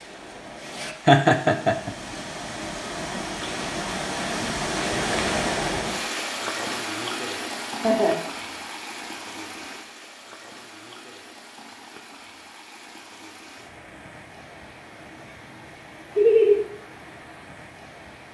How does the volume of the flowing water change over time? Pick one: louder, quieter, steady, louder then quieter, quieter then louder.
louder then quieter.